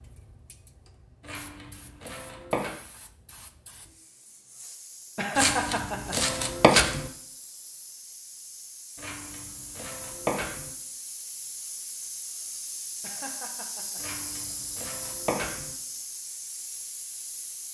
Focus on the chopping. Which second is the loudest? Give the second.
7 s.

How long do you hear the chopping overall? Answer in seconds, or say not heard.
7 s.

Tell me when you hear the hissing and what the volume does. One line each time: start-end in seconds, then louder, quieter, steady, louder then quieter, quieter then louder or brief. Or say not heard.
0.0-17.7 louder.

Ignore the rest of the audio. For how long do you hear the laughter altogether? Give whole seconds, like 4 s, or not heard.
2 s.